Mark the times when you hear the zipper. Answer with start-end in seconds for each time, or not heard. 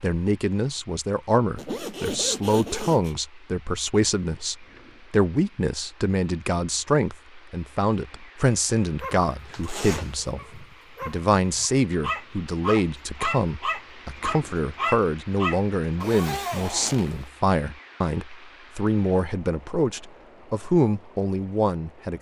1.6-3.1, 9.5-10.2, 16.0-17.3.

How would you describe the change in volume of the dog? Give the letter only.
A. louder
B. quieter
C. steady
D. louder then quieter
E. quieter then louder
A.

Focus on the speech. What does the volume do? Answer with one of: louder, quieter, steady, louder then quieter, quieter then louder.
steady.